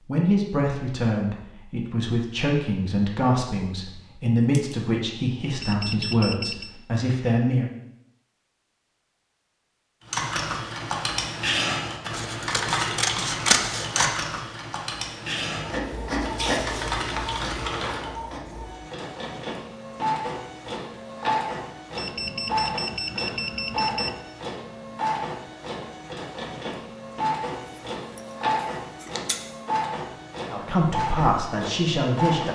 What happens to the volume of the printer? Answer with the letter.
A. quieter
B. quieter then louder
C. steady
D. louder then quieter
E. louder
C.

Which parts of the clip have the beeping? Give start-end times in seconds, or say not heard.
5.5-6.8, 21.9-24.2.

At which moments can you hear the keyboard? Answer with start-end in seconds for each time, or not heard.
10.1-18.1.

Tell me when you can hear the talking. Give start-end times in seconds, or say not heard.
0.1-7.7, 30.5-32.5.